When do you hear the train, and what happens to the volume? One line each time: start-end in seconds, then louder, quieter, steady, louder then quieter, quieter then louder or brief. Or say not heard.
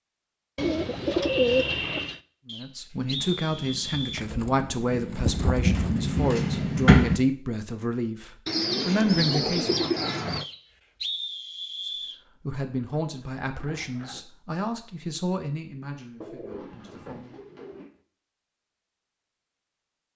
3.0-7.2 louder.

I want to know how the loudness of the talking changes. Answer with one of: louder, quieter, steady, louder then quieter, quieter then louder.
quieter.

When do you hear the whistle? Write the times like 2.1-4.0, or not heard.
2.5-4.2, 10.4-12.2.